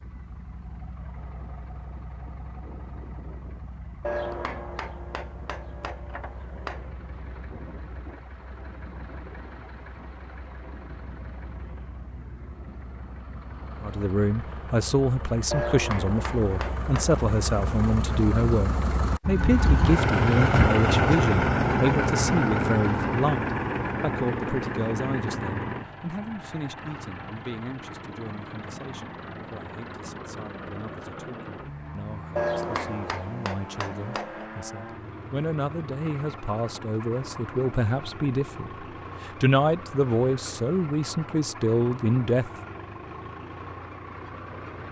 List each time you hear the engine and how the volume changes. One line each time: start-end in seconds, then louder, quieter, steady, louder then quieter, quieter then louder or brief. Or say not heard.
0.0-44.8 louder then quieter.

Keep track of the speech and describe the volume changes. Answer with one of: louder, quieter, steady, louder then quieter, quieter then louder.
quieter then louder.